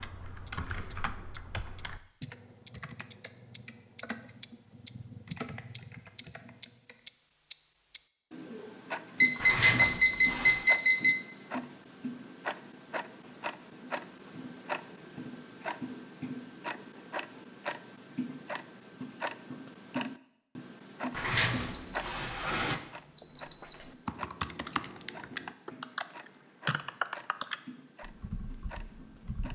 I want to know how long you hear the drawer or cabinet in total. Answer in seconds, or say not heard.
3 s.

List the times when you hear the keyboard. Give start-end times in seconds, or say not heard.
0.0-7.0, 23.2-29.5.